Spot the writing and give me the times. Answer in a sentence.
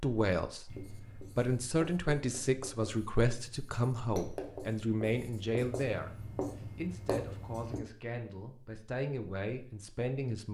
You can hear the writing from 0.7 to 7.8 s.